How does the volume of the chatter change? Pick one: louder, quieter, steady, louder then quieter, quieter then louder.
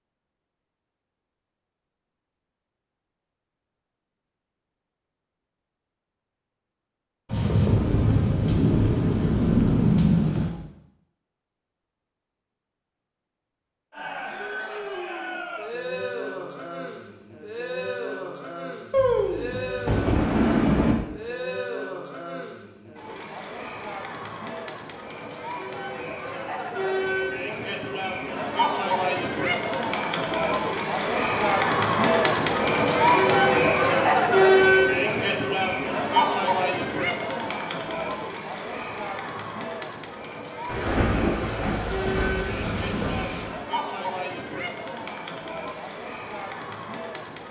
louder then quieter.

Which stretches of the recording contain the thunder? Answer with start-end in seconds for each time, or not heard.
7.3-10.5, 18.9-20.9, 40.6-43.5.